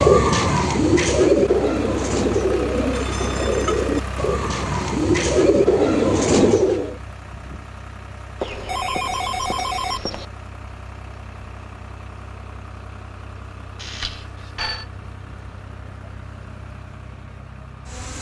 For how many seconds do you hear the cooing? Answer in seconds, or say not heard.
7 s.